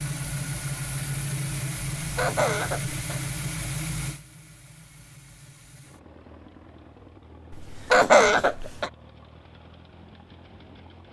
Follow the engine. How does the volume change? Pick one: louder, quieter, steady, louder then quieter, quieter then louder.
quieter.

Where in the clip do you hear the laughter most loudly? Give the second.
8 s.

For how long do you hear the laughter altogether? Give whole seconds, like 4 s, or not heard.
3 s.